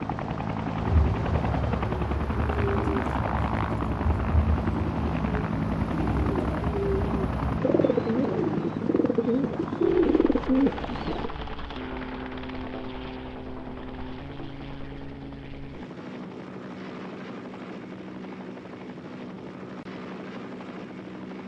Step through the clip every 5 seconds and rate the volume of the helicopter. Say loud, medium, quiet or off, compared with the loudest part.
loud, loud, medium, medium, medium.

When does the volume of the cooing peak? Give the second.
10 s.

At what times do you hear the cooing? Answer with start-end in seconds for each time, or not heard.
0.8-11.3.